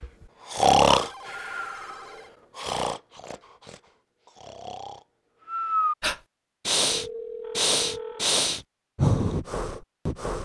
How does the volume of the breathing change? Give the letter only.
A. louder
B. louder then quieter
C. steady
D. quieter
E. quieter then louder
E.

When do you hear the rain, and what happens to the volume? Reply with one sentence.
The rain can't be heard in this clip.